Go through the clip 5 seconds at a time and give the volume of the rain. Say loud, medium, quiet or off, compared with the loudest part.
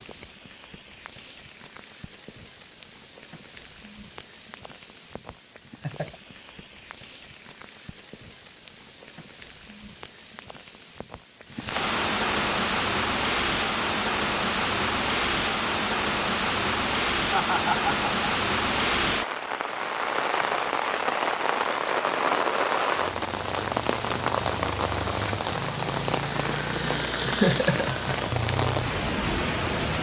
quiet, quiet, loud, loud, loud, loud.